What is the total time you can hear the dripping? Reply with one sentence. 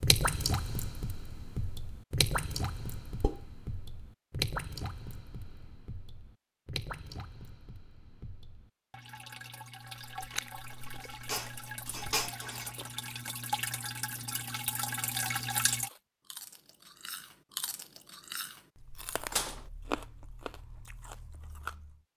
You can hear the dripping for 16 seconds altogether.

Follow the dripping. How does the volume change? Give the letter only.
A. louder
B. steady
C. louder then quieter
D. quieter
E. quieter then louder
E.